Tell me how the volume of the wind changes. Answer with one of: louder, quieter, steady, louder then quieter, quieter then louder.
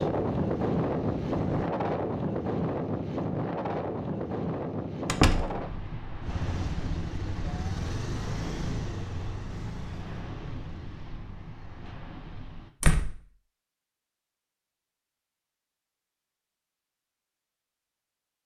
quieter.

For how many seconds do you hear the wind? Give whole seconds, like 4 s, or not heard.
13 s.